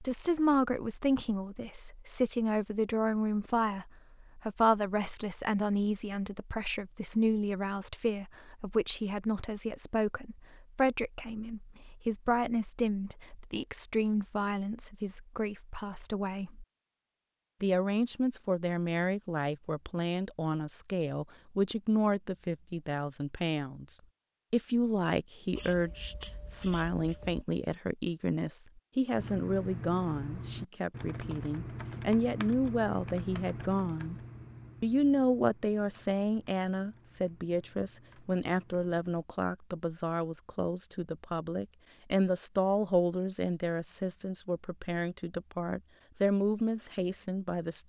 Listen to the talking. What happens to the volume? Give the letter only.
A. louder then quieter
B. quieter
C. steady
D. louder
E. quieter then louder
C.